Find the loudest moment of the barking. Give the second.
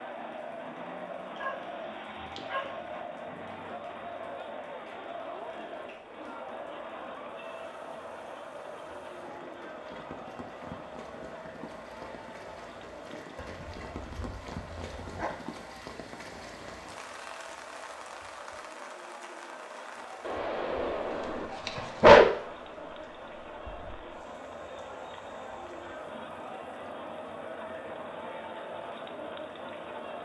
22 s.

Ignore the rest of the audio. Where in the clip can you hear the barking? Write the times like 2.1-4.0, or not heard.
1.4-2.8, 13.3-15.3, 20.2-22.2.